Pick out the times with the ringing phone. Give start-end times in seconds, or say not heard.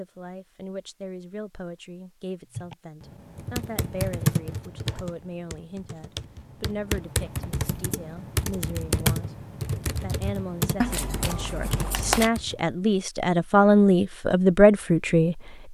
not heard.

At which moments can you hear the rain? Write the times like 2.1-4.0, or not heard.
not heard.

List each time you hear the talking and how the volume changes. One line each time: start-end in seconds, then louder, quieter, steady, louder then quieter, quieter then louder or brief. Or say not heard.
0.0-9.3 steady
10.0-15.7 louder.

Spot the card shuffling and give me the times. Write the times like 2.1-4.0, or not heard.
10.8-12.3.